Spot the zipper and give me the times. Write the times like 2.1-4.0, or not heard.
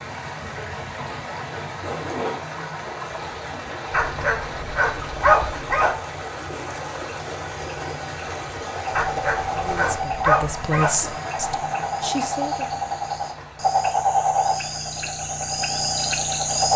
1.1-2.5.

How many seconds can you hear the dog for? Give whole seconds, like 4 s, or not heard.
4 s.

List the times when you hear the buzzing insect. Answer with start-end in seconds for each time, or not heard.
not heard.